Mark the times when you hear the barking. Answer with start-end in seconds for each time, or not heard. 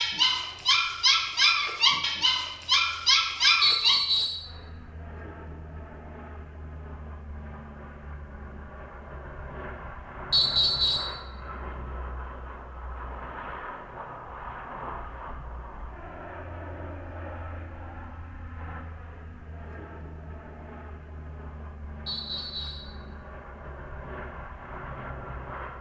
0.0-4.0.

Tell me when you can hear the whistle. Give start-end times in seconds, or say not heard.
3.6-4.5, 10.3-11.2, 22.1-22.9.